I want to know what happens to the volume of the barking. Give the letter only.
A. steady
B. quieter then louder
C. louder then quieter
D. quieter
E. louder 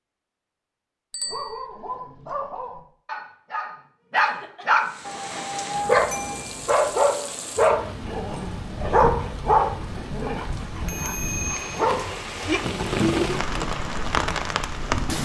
C.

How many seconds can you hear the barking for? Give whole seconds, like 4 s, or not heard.
11 s.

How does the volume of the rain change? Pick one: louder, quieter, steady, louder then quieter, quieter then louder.
louder.